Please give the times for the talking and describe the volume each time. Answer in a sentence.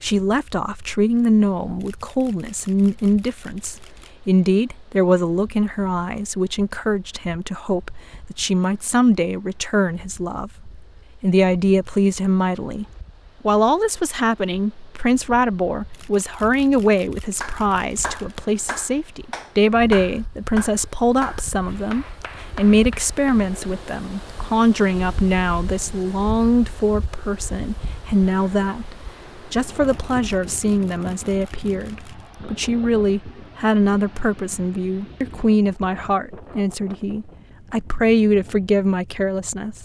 The talking can be heard from 0.0 to 39.8 s, at a steady volume.